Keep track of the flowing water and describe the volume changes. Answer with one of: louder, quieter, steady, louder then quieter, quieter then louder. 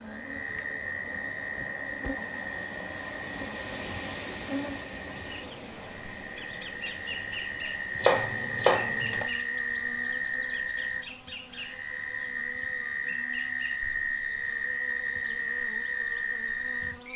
louder then quieter.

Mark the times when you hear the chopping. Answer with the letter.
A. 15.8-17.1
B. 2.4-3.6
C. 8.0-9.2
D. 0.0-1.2
C.